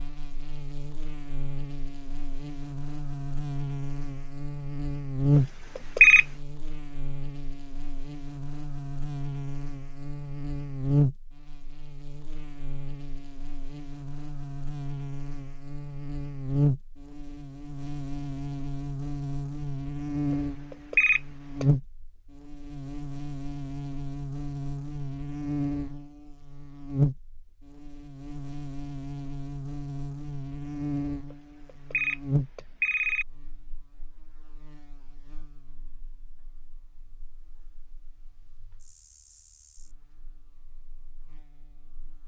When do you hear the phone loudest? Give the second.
6 s.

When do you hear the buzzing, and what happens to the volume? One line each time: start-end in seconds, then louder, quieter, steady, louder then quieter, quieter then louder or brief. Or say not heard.
0.0-42.2 quieter.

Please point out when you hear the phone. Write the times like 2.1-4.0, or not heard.
5.3-6.2, 20.3-21.6, 31.3-33.2.